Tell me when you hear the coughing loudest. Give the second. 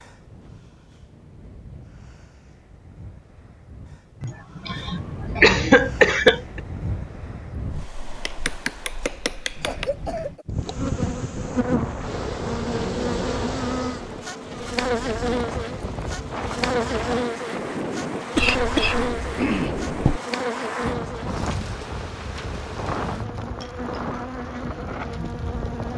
6 s.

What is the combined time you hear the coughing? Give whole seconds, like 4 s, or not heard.
5 s.